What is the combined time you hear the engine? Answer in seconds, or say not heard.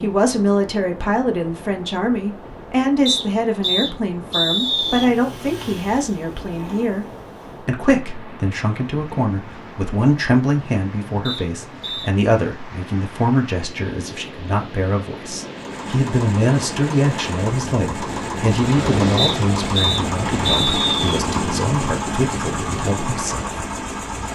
12 s.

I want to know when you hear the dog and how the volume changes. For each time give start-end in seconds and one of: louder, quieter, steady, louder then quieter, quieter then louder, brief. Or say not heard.
not heard.